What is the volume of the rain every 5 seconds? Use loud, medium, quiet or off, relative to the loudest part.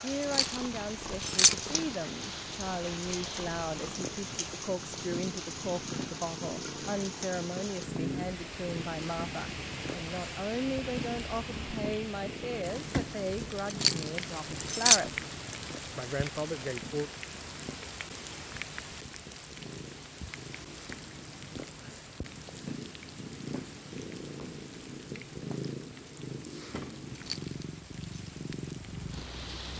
loud, loud, loud, loud, medium, medium.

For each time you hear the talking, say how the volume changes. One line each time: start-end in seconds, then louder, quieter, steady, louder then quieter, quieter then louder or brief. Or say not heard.
0.0-15.2 steady
15.9-17.1 brief.